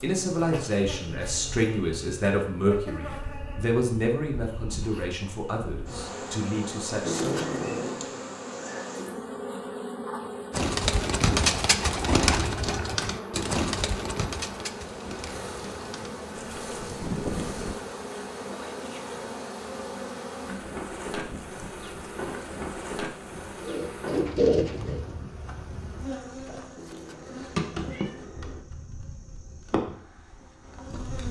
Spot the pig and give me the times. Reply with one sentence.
You can't hear the pig here.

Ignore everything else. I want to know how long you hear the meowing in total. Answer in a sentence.
The meowing can be heard for 3 seconds in total.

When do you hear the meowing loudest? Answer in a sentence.
The loudest moment of the meowing is at 7 seconds.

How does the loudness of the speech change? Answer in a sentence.
The volume of the speech goes down.